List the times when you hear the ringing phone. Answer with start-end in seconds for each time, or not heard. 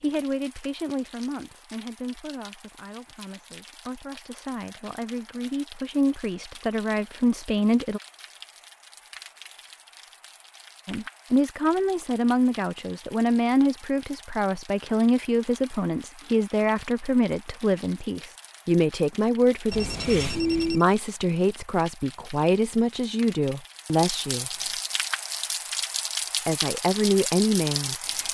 19.7-20.9.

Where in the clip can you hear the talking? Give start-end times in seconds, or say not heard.
0.0-8.0, 10.8-24.7, 26.4-28.2.